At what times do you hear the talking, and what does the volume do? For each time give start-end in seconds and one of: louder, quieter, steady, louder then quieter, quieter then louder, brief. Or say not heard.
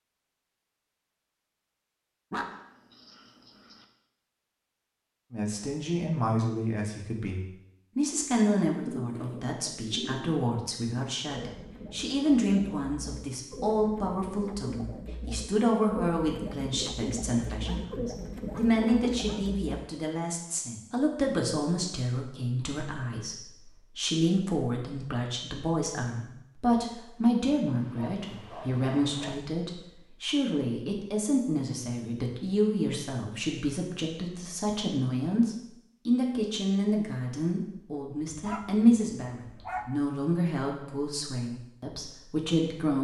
5.3-43.0 steady.